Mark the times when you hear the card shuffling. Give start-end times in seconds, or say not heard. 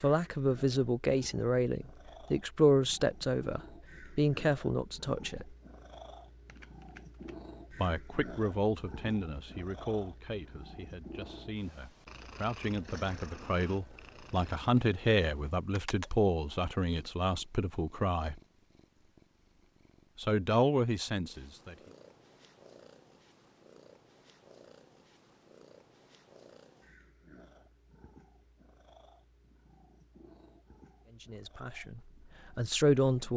6.5-7.3.